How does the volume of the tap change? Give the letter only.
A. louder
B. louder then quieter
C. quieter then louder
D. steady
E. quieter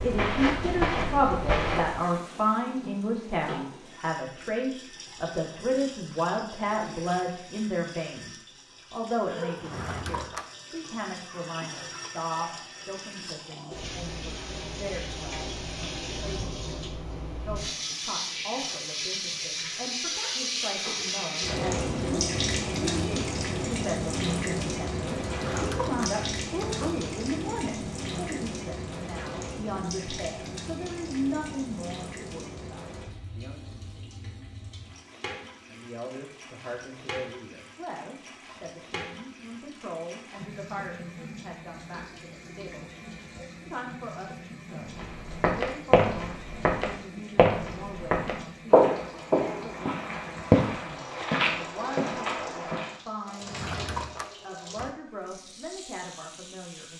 B.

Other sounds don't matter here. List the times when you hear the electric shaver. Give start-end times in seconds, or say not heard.
not heard.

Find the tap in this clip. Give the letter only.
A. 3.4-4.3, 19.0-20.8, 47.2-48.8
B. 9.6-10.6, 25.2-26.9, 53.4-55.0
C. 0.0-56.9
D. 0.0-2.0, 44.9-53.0
C.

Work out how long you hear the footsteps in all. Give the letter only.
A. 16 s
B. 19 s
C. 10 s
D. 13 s
C.